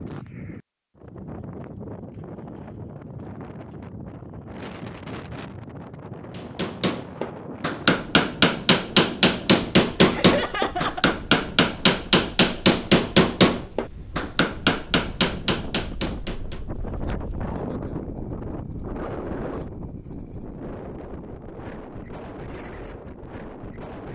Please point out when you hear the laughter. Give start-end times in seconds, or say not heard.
9.9-11.2.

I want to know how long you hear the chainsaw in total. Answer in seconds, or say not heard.
not heard.